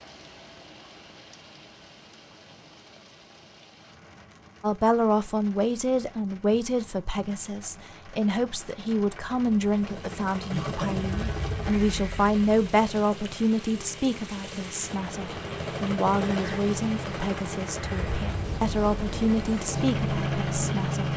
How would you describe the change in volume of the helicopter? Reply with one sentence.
The loudness of the helicopter goes down, then up.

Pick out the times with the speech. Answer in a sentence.
You can hear the speech from 4.6 to 21.1 s.